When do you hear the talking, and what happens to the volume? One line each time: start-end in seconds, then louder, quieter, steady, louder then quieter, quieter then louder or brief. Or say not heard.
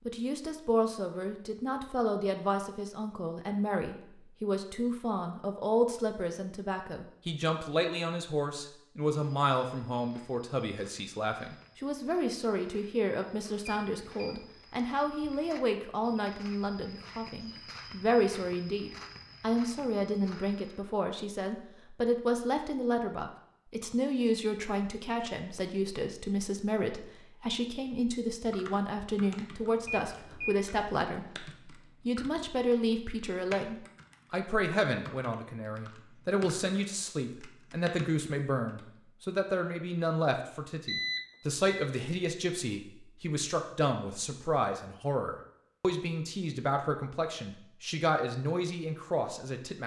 0.1-49.8 steady.